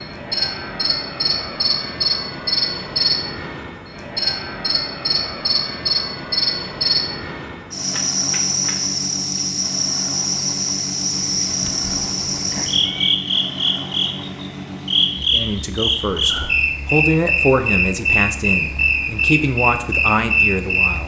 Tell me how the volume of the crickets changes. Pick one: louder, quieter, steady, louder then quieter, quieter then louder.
steady.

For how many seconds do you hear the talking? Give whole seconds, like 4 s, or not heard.
6 s.